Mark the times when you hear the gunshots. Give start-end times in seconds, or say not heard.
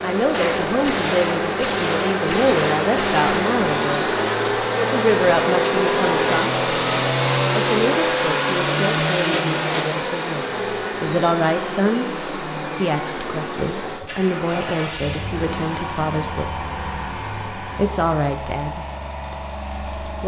0.3-3.6.